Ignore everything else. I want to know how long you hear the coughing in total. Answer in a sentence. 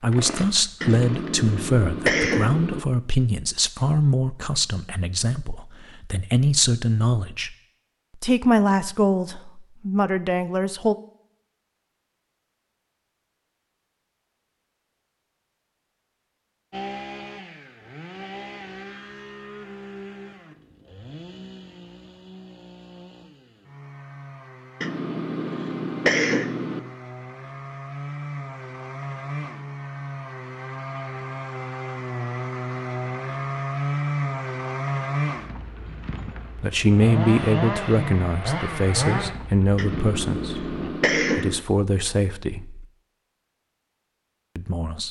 You can hear the coughing for 6 seconds altogether.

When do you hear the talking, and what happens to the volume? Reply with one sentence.
The talking can be heard from 0.0 to 7.5 s, getting quieter then louder; briefly from 8.2 to 10.9 s; from 36.5 to 42.9 s, getting quieter then louder; and briefly from 44.5 to 45.0 s.